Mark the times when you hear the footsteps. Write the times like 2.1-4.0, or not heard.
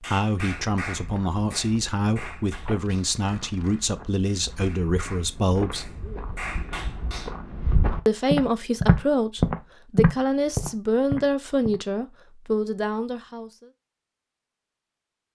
0.3-11.8.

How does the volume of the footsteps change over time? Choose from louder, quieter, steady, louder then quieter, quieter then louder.
louder.